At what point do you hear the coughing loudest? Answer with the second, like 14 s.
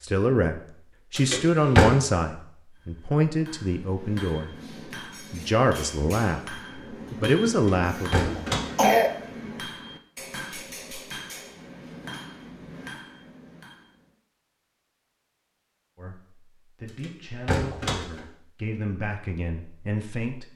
9 s.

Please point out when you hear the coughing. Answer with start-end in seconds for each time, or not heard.
7.1-7.5, 8.2-9.1.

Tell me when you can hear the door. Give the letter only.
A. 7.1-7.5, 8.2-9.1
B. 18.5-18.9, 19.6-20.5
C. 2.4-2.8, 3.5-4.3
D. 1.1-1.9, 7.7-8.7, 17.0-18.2
D.